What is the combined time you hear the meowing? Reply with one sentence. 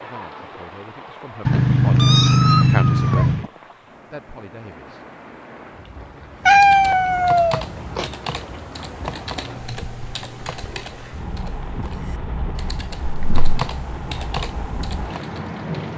You can hear the meowing for 4 seconds altogether.